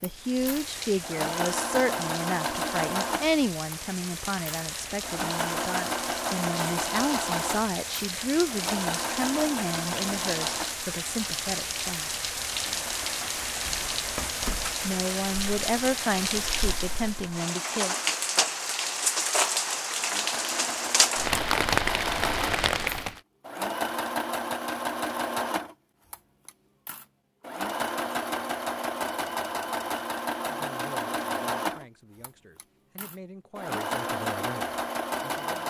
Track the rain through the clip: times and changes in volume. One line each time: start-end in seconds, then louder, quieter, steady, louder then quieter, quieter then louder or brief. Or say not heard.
0.0-23.2 louder.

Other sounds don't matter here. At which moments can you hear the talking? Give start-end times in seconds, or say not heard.
0.0-12.2, 14.8-17.9, 30.4-35.6.